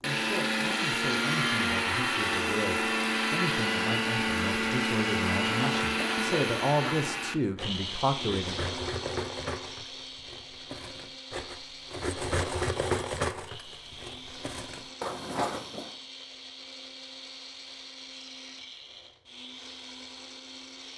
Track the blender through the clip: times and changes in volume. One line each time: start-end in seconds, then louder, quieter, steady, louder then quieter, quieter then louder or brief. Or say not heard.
0.0-20.9 quieter.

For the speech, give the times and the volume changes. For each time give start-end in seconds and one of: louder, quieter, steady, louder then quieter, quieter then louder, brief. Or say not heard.
0.0-8.8 louder.